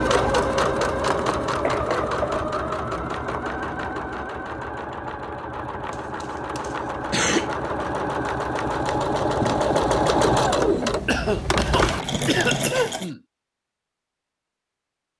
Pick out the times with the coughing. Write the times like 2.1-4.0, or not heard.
1.6-2.5, 5.9-7.5, 11.1-13.2.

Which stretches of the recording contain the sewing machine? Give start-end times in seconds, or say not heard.
0.0-13.1.